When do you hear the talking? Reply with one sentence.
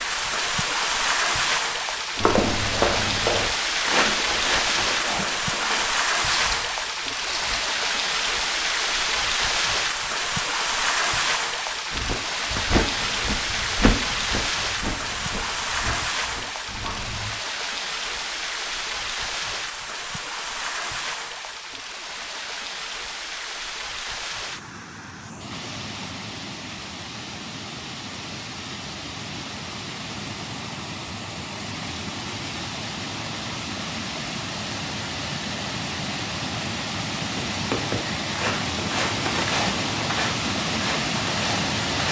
You can't hear the talking here.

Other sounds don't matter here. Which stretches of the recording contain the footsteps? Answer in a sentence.
The footsteps can be heard from 2.1 to 7.6 s, from 11.9 to 17.3 s and from 37.4 to 42.0 s.